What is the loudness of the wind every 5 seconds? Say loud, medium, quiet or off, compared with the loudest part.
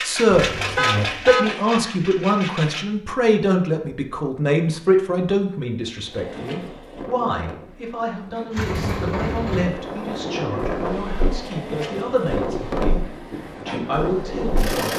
off, medium, loud.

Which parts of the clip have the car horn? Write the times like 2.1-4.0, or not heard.
0.3-1.6.